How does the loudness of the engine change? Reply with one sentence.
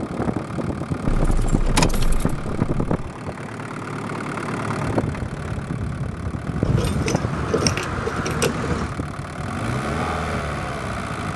The loudness of the engine stays about the same.